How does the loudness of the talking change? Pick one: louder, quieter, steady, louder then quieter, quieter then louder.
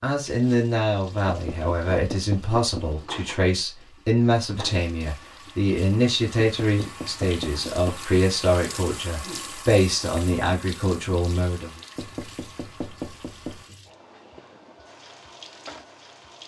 steady.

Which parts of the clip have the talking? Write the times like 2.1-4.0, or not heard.
0.0-11.7.